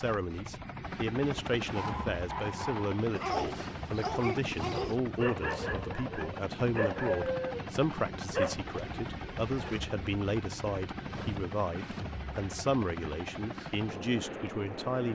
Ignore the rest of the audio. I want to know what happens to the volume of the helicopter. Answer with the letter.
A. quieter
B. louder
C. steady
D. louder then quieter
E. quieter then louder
C.